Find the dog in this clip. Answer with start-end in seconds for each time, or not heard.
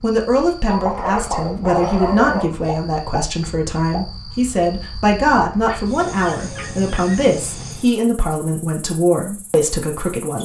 0.7-2.5, 5.5-7.2.